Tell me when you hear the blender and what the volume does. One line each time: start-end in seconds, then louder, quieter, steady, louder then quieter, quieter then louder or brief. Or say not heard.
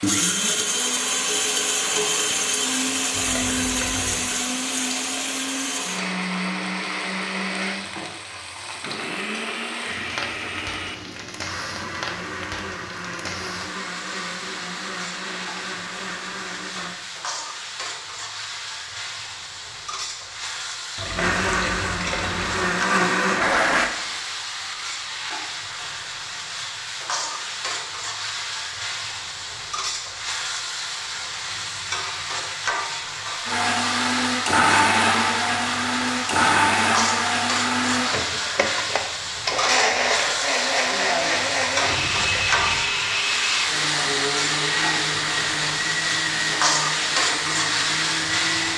0.0-17.0 quieter
21.1-23.9 brief
33.5-48.7 quieter.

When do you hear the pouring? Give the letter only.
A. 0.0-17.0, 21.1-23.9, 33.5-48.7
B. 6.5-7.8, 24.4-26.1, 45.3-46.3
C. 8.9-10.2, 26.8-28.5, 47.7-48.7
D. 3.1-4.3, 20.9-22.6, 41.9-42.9
D.